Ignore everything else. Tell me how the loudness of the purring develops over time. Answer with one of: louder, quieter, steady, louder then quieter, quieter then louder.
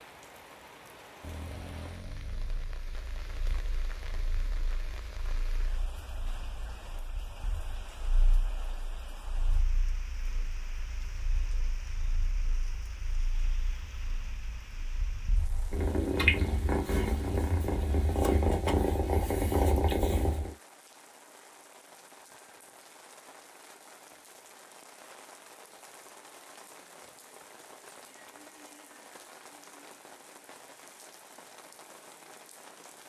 louder.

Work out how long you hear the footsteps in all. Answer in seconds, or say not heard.
not heard.